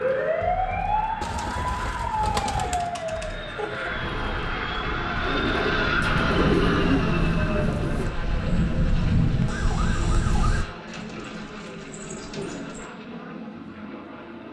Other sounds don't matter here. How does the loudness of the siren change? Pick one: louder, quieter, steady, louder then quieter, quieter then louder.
quieter then louder.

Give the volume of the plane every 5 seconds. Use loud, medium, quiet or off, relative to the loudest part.
medium, loud, medium.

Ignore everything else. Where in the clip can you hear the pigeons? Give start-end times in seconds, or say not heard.
1.2-2.9, 5.2-8.1, 10.8-12.9.